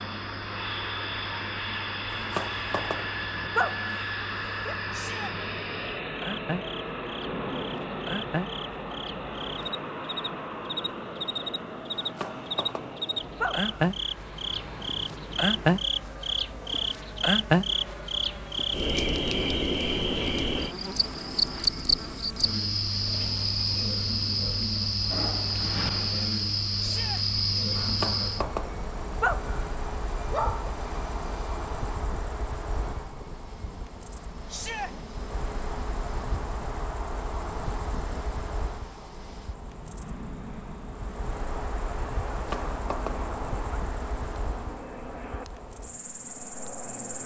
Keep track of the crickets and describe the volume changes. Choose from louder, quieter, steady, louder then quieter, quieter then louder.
louder then quieter.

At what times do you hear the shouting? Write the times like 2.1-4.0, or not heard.
4.9-5.3, 26.8-27.2, 34.5-34.9.